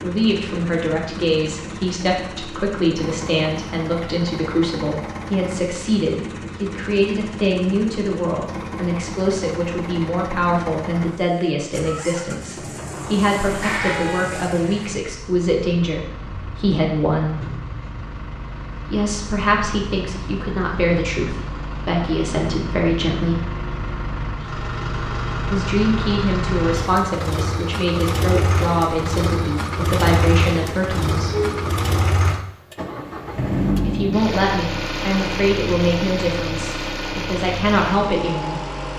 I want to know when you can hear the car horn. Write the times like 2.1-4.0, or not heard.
13.4-14.3, 31.2-31.8.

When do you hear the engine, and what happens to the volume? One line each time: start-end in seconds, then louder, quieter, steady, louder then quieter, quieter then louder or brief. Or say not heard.
0.0-38.9 louder.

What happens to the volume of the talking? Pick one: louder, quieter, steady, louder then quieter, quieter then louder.
steady.